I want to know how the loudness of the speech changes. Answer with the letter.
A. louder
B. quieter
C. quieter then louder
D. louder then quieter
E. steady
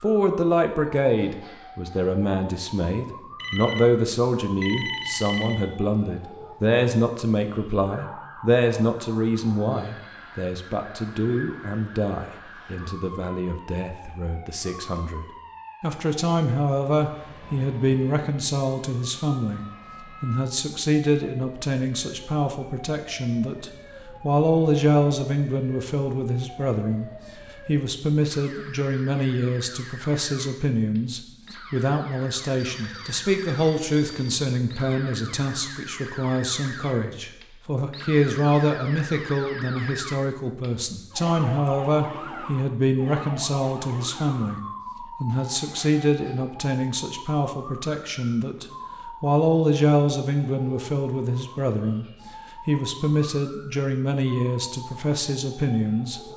E.